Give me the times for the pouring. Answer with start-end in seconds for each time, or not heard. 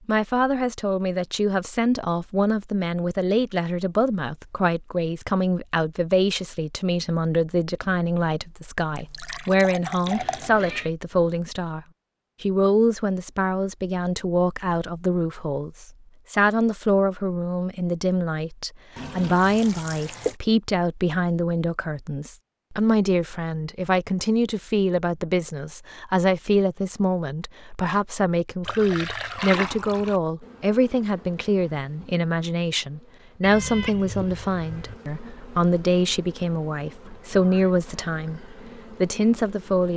8.9-10.5, 18.9-20.4, 28.6-30.2.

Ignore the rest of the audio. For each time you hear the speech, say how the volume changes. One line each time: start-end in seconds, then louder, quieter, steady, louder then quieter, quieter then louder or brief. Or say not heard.
0.1-39.9 steady.